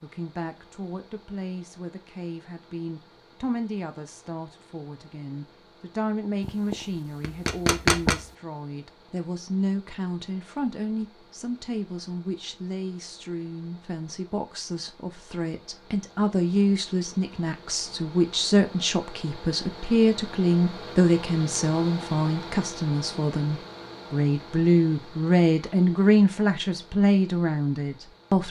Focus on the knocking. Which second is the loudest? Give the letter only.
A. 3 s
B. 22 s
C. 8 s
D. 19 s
C.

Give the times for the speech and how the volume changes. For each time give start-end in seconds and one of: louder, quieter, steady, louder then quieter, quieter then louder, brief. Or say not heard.
0.0-28.4 louder.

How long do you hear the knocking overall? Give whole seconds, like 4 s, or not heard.
2 s.